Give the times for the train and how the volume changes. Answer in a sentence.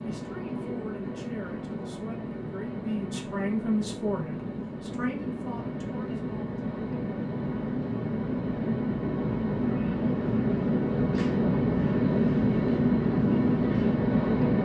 You can hear the train from 0.0 to 14.5 s, getting louder.